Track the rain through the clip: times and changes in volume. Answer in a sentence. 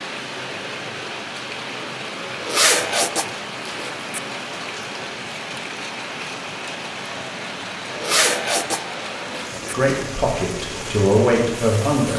The rain can be heard from 0.0 to 12.1 s, at a steady volume.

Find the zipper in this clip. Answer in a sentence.
The zipper can be heard from 2.4 to 4.2 s and from 7.9 to 9.8 s.